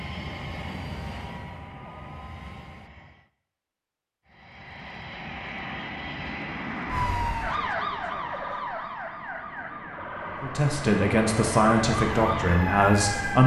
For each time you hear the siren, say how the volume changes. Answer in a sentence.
The siren can be heard from 6.9 to 13.4 s, getting quieter then louder.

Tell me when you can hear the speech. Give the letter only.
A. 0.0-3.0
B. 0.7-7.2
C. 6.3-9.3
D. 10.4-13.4
D.